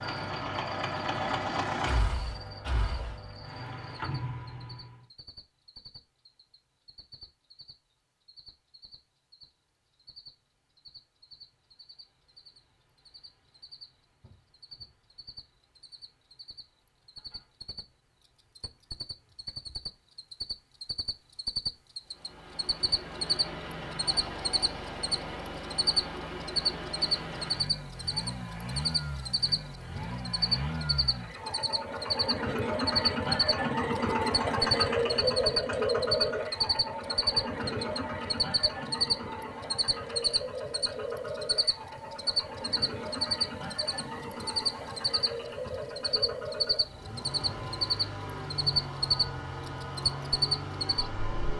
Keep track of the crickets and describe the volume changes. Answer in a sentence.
The volume of the crickets goes up.